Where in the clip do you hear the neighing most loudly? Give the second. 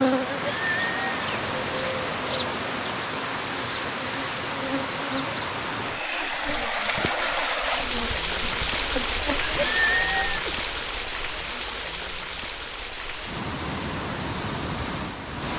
10 s.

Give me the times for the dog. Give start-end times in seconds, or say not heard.
not heard.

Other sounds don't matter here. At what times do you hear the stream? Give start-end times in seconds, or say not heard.
0.0-15.5.